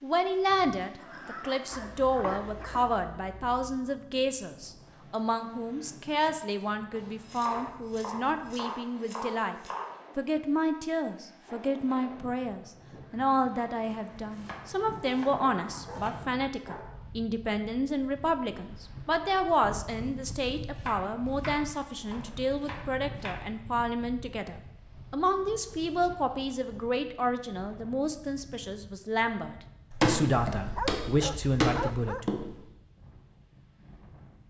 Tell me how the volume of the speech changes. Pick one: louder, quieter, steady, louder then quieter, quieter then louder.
steady.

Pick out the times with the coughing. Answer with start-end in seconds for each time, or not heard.
not heard.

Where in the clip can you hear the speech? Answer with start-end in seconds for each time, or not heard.
0.0-9.6, 10.2-32.2.